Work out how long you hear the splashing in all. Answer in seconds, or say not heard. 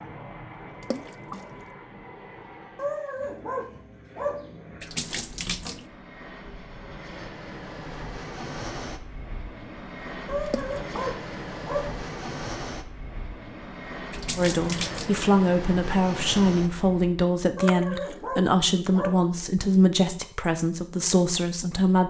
4 s.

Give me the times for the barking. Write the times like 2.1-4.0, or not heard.
2.8-4.7, 10.2-12.0, 17.6-19.4.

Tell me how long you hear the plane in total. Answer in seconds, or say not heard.
17 s.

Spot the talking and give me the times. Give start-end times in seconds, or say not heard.
14.3-22.0.